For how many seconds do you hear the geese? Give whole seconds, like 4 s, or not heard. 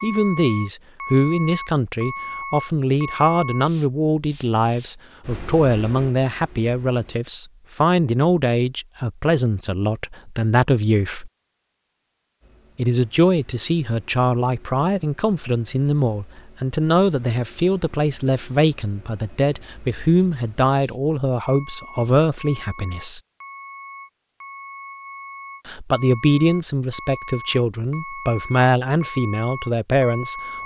not heard.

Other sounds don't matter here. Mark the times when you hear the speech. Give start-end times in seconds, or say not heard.
0.0-11.3, 12.8-23.2, 25.6-30.4.